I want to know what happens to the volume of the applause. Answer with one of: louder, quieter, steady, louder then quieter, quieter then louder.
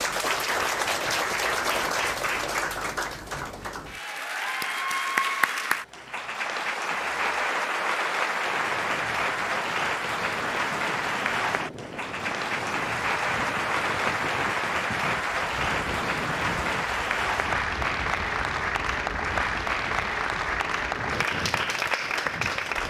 steady.